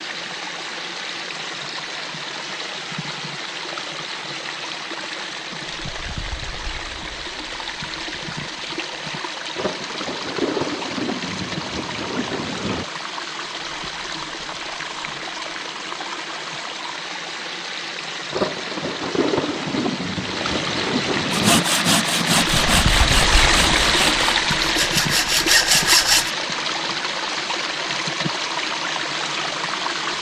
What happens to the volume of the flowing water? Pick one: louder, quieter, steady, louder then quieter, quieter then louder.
louder.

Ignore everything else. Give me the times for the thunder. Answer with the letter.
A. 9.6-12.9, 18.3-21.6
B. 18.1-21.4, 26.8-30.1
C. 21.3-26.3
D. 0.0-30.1
A.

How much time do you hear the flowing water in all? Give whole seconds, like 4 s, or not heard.
30 s.